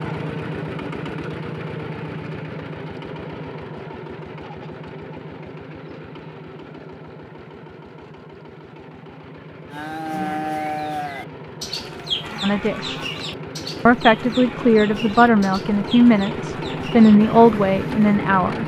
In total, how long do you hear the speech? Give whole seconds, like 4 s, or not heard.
5 s.